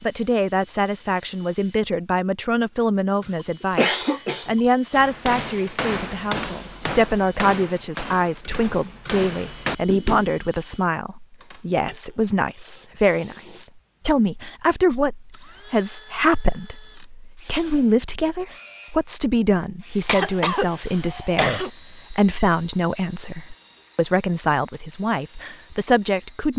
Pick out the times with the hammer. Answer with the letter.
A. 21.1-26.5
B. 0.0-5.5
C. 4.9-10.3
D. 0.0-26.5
C.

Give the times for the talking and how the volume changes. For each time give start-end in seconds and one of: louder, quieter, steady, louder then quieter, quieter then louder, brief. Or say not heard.
0.0-26.5 steady.